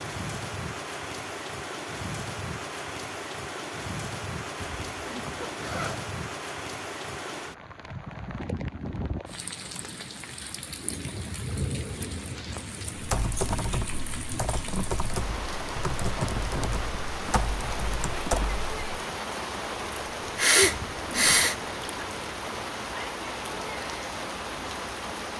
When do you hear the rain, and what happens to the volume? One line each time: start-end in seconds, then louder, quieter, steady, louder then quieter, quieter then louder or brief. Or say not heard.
0.0-25.3 steady.